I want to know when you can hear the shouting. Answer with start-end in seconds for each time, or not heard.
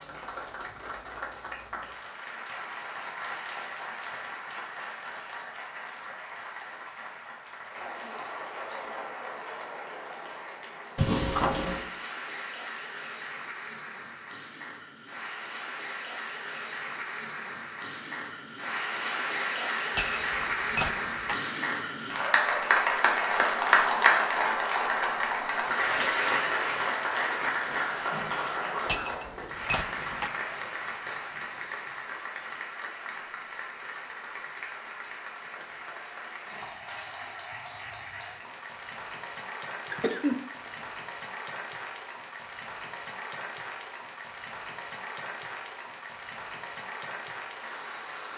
not heard.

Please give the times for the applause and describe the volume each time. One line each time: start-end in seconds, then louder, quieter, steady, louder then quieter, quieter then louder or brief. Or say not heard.
0.0-48.3 louder then quieter.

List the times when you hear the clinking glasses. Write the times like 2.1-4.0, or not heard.
19.9-21.4, 28.9-30.3.